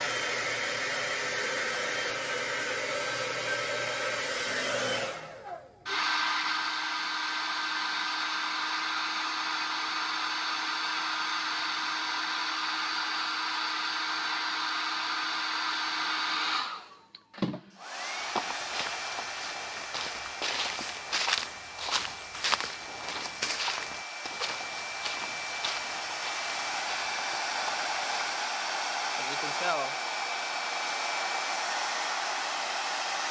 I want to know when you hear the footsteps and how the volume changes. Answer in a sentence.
You can hear the footsteps from 18.1 to 28.4 s, getting louder then quieter.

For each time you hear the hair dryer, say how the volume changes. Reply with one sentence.
You can hear the hair dryer from 0.0 to 33.2 s, getting quieter then louder.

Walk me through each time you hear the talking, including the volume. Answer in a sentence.
The talking can't be heard in this clip.